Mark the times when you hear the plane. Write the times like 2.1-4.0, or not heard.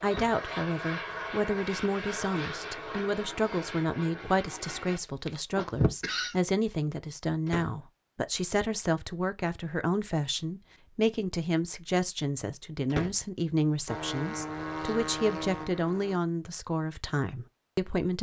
0.0-5.0, 13.8-16.2.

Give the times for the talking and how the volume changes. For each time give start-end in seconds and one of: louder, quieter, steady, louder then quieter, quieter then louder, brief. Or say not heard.
0.0-18.1 steady.